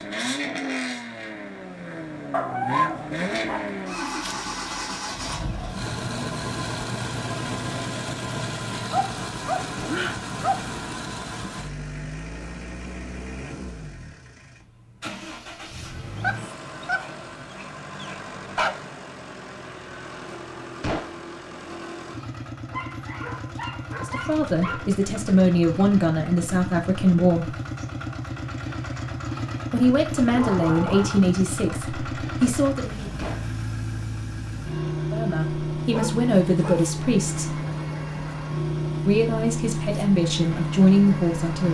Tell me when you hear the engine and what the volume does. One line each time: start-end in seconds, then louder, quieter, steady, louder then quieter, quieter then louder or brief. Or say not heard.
0.0-41.6 quieter then louder.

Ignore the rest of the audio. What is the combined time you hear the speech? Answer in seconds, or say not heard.
12 s.